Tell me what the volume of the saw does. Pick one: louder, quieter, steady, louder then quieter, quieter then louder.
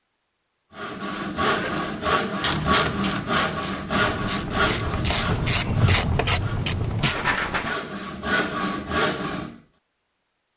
quieter then louder.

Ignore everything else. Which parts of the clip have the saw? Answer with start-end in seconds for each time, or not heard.
0.8-9.6.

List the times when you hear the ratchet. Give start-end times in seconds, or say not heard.
2.4-7.2.